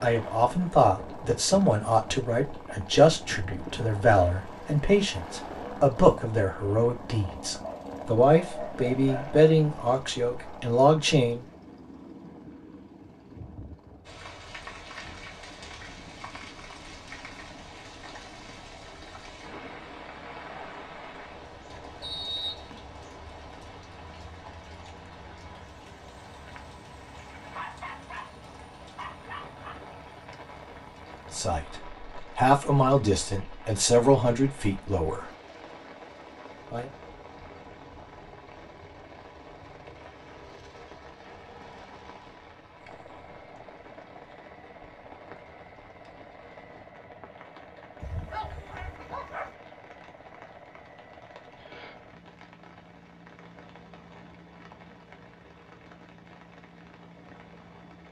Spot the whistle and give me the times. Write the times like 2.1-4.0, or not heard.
22.0-22.7.